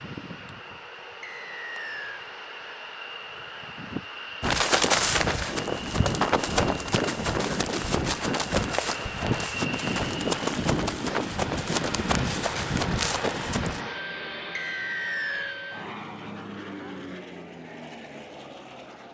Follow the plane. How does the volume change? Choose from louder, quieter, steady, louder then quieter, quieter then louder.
louder then quieter.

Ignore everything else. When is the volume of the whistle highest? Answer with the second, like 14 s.
15 s.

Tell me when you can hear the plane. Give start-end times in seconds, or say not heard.
0.0-19.0.